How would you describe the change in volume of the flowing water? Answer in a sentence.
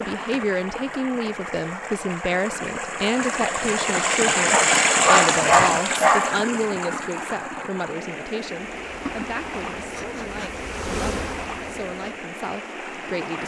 The volume of the flowing water goes up, then down.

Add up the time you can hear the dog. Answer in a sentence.
You can hear the dog for 2 seconds altogether.